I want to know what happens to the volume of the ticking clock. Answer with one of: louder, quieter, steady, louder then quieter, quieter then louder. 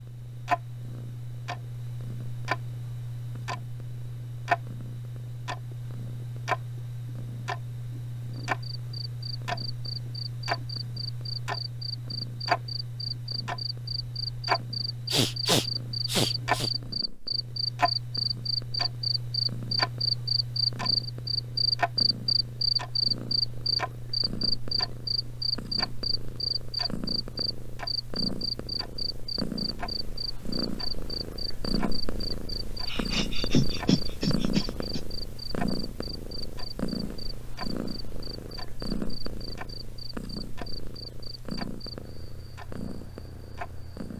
quieter.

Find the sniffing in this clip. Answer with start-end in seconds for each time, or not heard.
15.1-16.7, 32.9-35.0.